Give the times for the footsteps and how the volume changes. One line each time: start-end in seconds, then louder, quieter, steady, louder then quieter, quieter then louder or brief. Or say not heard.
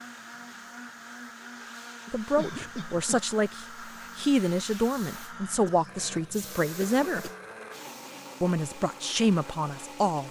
not heard.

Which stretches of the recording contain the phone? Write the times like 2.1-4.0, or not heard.
not heard.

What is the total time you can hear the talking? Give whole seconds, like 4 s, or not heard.
7 s.